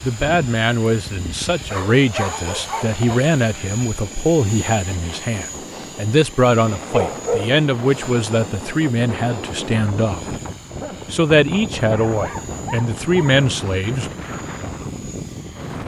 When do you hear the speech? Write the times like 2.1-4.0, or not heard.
0.0-10.3, 11.1-14.1.